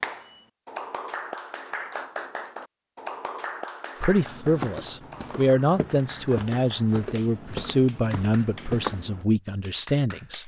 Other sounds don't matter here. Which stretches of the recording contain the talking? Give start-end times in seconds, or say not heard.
4.0-10.4.